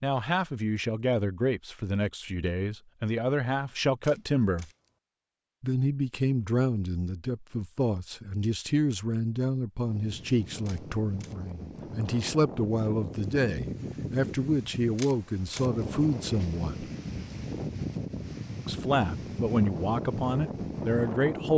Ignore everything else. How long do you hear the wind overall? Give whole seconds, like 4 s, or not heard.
12 s.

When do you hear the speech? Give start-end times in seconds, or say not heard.
0.0-4.7, 5.6-16.9, 18.6-21.5.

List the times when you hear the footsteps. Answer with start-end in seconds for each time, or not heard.
not heard.